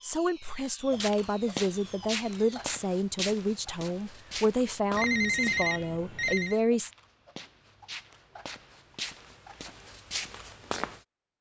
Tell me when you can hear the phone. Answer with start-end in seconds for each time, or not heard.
4.9-6.6.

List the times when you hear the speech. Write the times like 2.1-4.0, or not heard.
0.0-6.9.